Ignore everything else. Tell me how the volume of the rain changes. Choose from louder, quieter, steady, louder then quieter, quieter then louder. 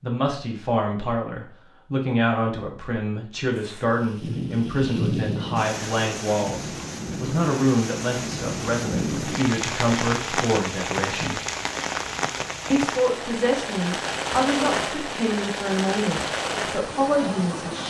steady.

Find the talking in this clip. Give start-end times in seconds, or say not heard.
0.0-11.4, 12.7-17.8.